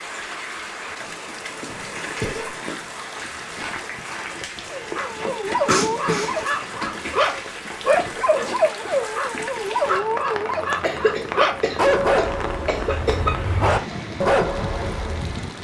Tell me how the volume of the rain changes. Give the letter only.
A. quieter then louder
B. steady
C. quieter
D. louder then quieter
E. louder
B.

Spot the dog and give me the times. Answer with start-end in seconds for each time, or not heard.
4.7-15.3.